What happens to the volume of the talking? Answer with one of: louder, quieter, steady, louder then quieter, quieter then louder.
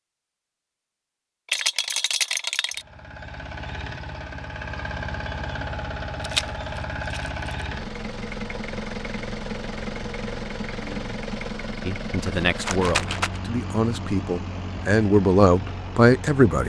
louder.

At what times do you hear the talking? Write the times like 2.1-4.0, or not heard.
11.8-16.6.